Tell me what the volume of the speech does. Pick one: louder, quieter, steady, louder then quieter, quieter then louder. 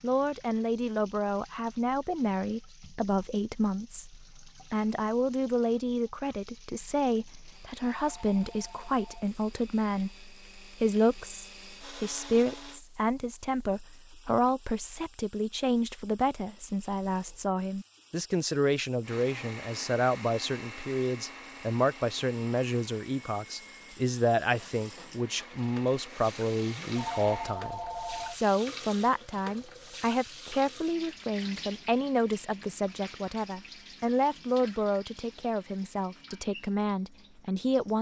steady.